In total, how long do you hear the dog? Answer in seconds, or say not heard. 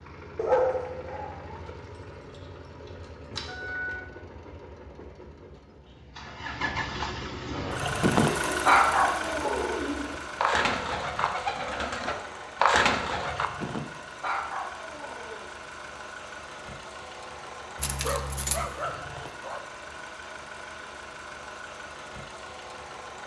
7 s.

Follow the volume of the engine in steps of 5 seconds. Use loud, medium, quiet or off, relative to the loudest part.
quiet, loud, medium, medium, medium.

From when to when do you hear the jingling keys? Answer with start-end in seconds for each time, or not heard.
1.6-4.0, 17.8-18.7.